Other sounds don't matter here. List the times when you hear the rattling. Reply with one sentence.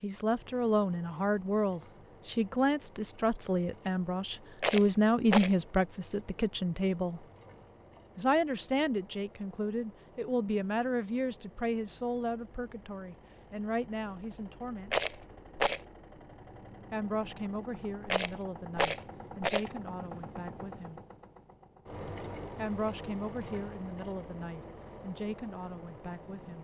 You can hear the rattling from 4.6 to 5.5 s, from 14.8 to 15.8 s and from 18.1 to 19.7 s.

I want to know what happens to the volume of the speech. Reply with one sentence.
The volume of the speech goes down.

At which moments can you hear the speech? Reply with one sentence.
The speech can be heard from 0.0 to 7.2 s, from 8.2 to 14.9 s, from 16.9 to 21.0 s and from 22.6 to 26.5 s.